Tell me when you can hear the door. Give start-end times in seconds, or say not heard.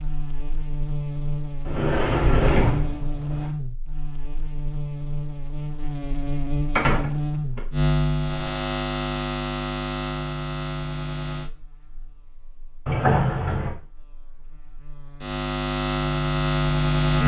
1.6-3.5, 6.8-7.6, 12.8-13.8.